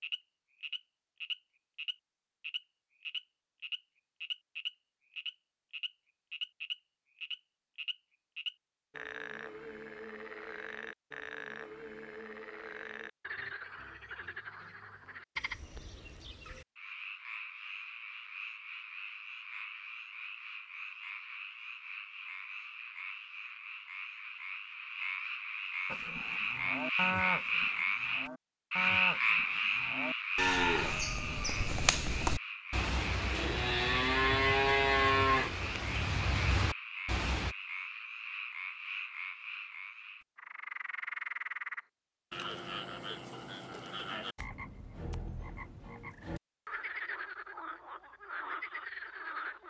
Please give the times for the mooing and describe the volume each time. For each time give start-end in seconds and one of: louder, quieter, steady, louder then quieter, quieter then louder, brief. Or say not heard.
25.9-37.5 louder.